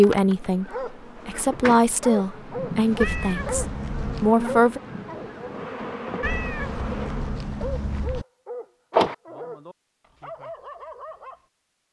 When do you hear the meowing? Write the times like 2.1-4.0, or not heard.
3.0-4.3, 6.2-8.2.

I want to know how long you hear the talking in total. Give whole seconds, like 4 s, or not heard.
5 s.